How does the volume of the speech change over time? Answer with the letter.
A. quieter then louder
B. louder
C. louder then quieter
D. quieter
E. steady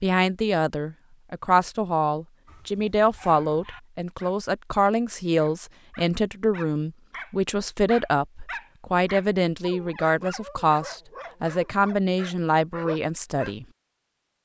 E.